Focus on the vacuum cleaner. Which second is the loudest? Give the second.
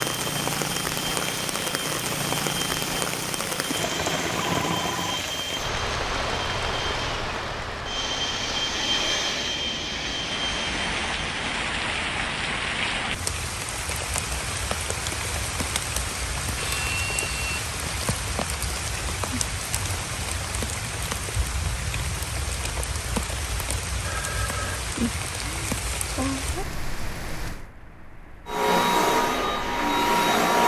30 s.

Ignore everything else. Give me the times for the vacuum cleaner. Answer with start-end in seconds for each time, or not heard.
0.0-11.4, 28.4-30.6.